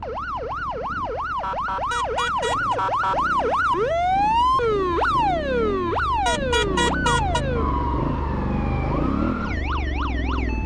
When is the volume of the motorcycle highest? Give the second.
9 s.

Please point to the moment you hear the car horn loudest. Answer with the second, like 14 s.
7 s.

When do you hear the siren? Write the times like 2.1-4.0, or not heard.
0.0-10.6.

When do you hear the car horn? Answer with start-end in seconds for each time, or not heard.
1.9-2.8, 6.2-7.4.